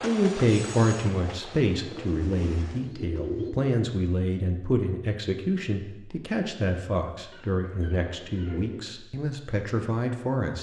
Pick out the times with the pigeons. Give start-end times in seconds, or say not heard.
1.9-3.5, 7.3-9.0.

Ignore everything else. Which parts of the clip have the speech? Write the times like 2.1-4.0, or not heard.
0.0-10.5.